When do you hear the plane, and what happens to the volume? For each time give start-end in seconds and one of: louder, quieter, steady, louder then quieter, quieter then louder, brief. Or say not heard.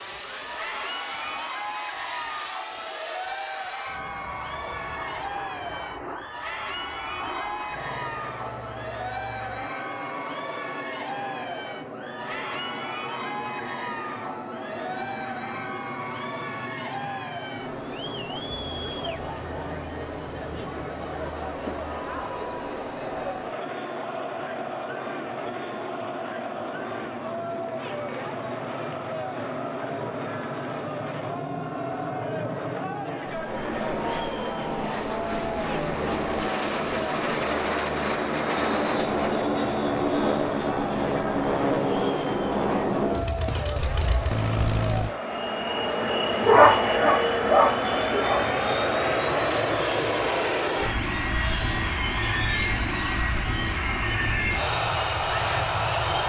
0.0-56.2 louder.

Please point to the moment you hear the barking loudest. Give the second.
47 s.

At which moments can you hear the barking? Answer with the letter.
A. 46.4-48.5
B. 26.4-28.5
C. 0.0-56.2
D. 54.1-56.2
A.